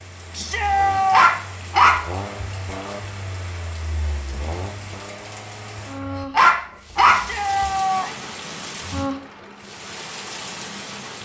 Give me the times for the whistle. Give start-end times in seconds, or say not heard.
not heard.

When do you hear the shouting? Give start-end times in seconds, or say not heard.
0.3-1.2, 7.1-8.2.